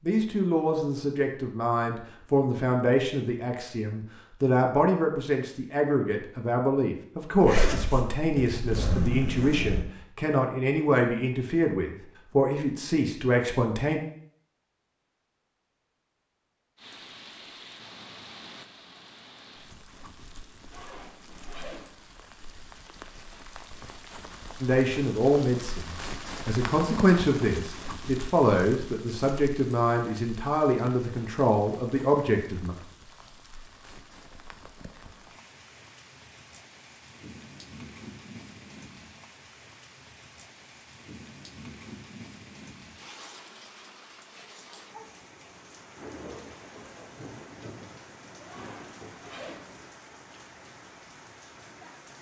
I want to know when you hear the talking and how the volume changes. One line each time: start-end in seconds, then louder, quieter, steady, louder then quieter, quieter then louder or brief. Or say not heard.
0.0-14.0 steady
24.6-32.8 steady.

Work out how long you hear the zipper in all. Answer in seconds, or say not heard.
5 s.